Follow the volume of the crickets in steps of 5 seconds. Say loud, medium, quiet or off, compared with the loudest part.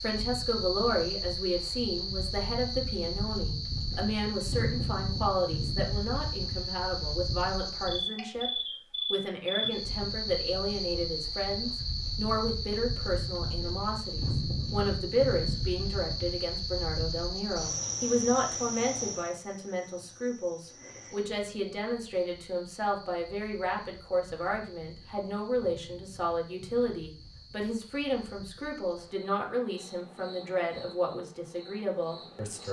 loud, loud, loud, loud, quiet, quiet, quiet.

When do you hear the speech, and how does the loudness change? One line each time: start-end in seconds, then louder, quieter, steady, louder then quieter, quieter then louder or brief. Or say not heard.
0.0-32.6 steady.